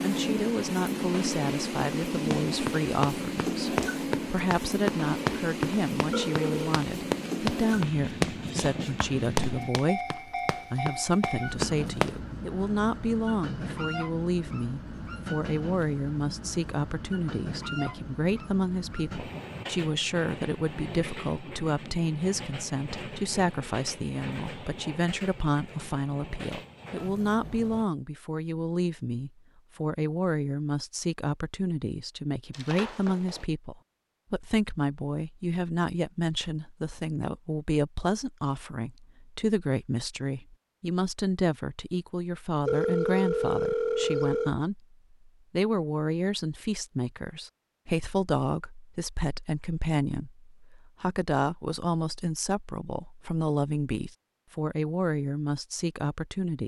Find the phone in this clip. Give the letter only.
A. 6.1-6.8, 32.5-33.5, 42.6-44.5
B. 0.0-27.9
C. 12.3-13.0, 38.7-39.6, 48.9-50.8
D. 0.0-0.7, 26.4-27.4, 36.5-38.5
A.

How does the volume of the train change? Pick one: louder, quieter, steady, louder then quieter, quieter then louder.
quieter.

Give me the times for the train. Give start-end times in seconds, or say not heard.
0.0-27.9.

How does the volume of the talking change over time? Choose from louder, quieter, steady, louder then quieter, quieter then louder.
steady.